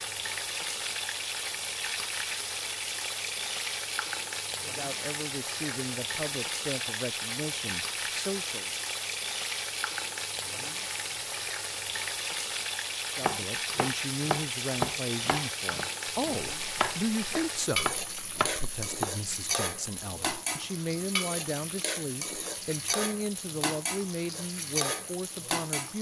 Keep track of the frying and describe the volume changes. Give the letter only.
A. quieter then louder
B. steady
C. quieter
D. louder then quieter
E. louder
B.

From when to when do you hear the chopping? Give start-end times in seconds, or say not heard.
13.2-19.1.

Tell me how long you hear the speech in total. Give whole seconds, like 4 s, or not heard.
17 s.